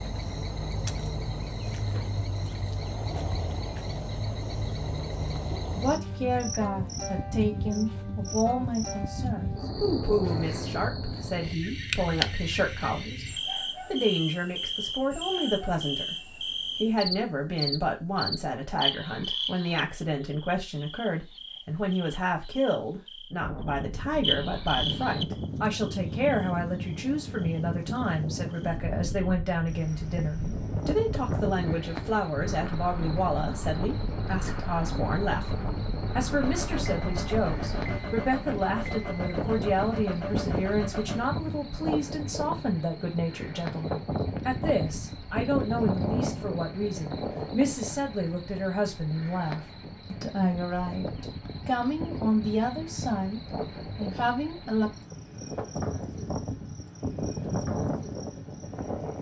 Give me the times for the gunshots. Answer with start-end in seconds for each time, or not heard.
not heard.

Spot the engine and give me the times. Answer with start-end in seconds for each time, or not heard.
36.4-41.3.